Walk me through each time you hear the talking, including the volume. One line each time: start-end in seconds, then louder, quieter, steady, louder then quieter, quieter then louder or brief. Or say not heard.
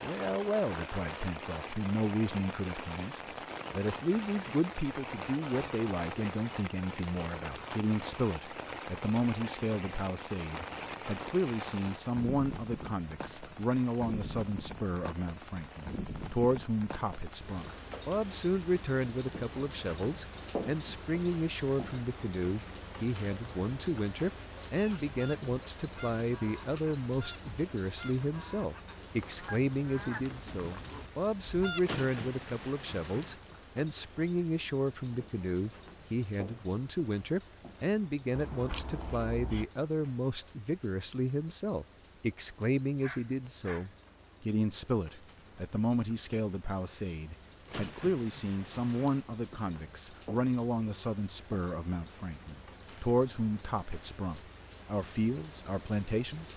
0.0-56.5 steady.